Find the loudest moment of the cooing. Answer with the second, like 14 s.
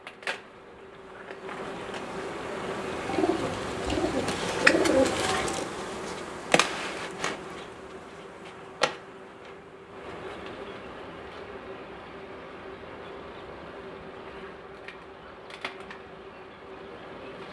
5 s.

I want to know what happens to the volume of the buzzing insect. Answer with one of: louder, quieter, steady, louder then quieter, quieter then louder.
louder then quieter.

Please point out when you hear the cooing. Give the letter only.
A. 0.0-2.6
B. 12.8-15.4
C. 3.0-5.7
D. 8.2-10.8
C.